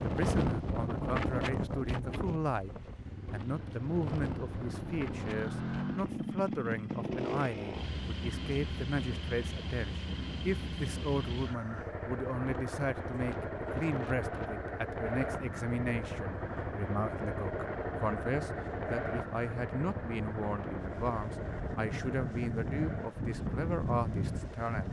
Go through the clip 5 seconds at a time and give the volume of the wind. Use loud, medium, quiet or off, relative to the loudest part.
loud, medium, medium, medium, loud.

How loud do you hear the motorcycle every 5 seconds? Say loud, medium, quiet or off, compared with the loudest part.
medium, loud, loud, loud, medium.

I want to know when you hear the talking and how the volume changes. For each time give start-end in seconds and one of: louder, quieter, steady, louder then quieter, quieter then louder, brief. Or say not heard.
0.0-2.7 brief
3.3-24.8 steady.